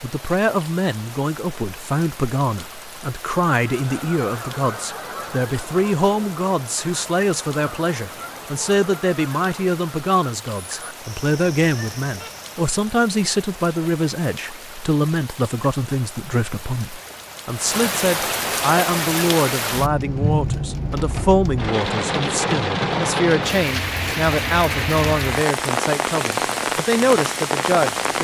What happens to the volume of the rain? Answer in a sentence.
The loudness of the rain goes up.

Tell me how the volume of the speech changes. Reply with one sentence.
The volume of the speech stays about the same.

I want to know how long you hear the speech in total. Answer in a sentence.
You can hear the speech for 28 seconds altogether.